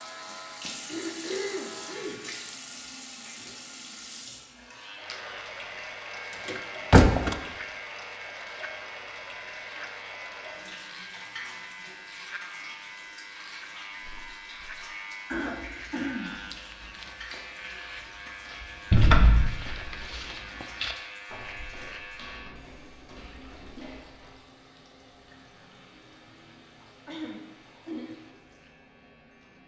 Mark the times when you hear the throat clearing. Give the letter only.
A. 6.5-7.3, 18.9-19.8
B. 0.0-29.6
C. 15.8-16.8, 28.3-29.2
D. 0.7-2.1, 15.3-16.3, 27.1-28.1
D.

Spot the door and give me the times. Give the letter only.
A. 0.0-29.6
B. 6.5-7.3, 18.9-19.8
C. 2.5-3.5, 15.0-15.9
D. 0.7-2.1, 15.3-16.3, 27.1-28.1
B.